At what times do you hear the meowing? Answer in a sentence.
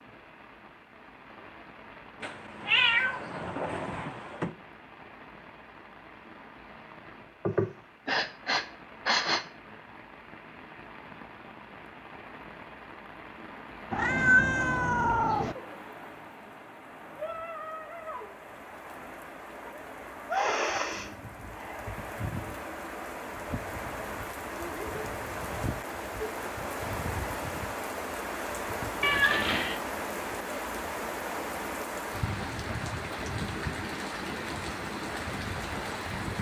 The meowing can be heard from 2.2 to 4.5 s, from 13.9 to 15.6 s and from 29.0 to 29.8 s.